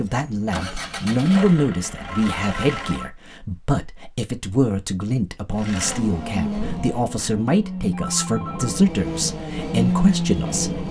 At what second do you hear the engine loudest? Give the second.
10 s.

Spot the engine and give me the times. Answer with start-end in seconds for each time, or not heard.
0.0-3.1, 5.5-10.8.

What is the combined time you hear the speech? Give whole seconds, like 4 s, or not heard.
11 s.